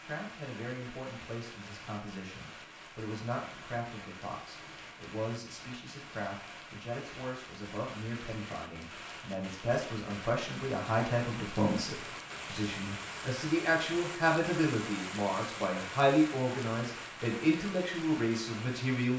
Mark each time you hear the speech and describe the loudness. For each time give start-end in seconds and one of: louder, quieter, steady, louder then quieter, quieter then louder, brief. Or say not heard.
0.0-19.1 louder.